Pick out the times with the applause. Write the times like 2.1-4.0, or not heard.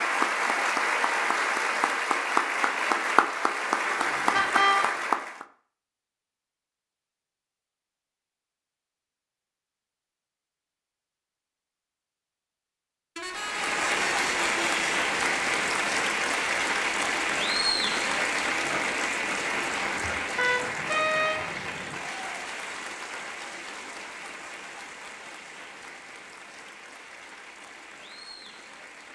0.0-5.5, 13.3-29.0.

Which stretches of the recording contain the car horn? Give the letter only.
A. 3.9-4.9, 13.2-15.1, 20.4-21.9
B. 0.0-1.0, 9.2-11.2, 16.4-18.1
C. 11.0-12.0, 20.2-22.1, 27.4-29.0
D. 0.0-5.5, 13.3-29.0
A.